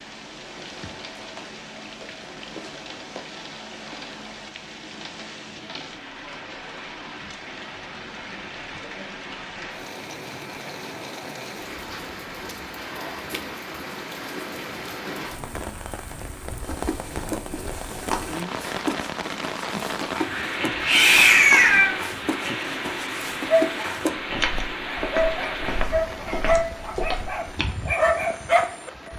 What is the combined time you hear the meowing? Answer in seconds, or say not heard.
2 s.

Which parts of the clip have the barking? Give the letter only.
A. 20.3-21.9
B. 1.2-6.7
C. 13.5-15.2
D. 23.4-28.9
D.